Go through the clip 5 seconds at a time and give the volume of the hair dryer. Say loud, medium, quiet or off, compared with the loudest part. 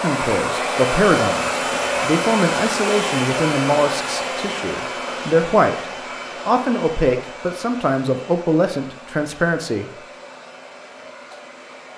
loud, medium, quiet.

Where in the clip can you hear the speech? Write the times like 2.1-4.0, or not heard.
0.0-5.8, 6.5-9.9.